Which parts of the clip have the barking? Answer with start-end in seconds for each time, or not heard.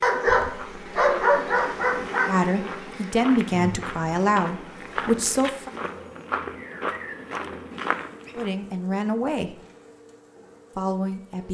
0.0-2.4.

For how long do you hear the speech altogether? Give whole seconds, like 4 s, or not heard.
5 s.